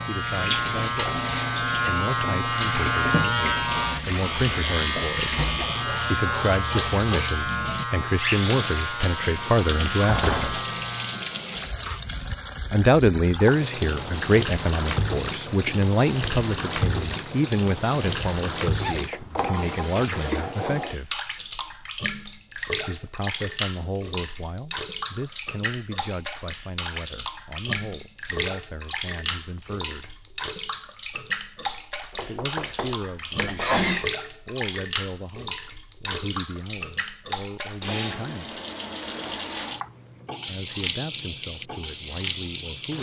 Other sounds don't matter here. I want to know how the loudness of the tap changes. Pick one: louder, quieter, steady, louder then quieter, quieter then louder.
steady.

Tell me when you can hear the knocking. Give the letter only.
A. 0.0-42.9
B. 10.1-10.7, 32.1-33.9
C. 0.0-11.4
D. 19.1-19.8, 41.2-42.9
B.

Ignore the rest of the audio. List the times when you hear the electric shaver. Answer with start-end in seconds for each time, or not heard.
0.0-11.4.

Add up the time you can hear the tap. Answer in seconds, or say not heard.
43 s.